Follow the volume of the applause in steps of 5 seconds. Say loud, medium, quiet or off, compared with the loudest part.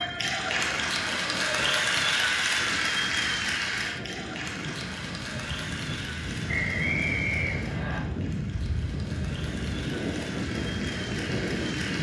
loud, quiet, medium.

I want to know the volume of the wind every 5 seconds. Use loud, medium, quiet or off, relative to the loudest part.
medium, loud, loud.